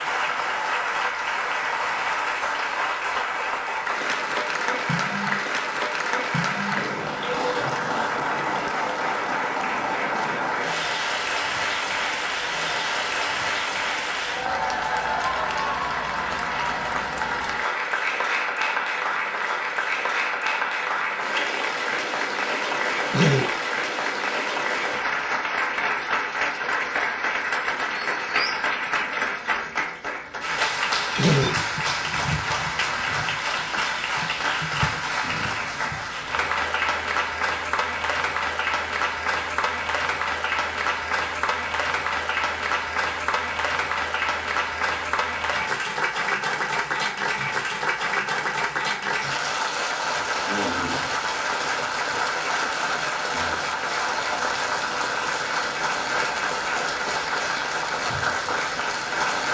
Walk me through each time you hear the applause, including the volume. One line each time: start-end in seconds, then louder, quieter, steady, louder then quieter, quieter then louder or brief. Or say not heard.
0.0-59.4 steady.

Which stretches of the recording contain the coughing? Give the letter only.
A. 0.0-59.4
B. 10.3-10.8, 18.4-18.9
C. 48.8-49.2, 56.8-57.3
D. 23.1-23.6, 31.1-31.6
D.